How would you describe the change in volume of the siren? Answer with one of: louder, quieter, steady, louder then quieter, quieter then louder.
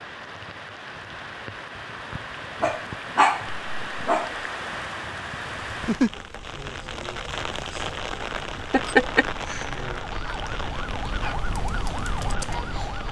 louder.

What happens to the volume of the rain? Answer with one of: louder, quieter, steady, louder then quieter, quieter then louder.
louder then quieter.